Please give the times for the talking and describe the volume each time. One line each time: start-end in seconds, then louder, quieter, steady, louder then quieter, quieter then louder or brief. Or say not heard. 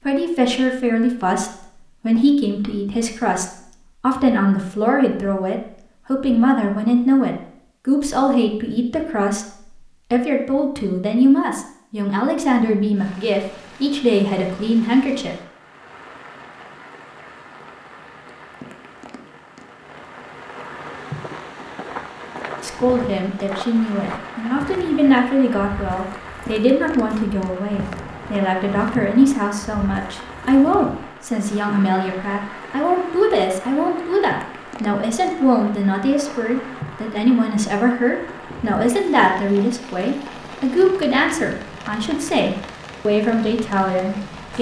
0.0-15.3 steady
22.6-44.5 steady.